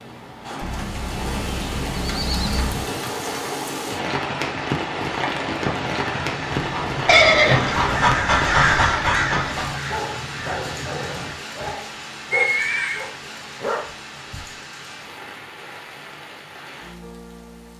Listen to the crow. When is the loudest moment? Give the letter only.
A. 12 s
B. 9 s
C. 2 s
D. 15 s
B.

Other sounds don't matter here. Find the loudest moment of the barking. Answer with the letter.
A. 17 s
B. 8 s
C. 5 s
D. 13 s
B.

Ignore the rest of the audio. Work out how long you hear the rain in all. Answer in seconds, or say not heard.
18 s.